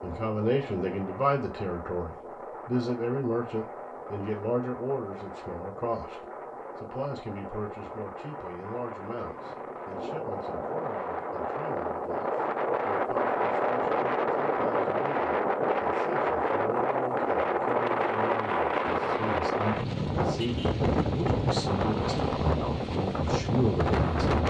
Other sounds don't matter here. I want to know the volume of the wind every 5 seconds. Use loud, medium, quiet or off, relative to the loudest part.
quiet, quiet, loud, loud, loud.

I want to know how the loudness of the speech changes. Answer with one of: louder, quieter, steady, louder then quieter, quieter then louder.
quieter then louder.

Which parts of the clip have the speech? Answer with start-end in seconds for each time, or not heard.
0.0-24.4.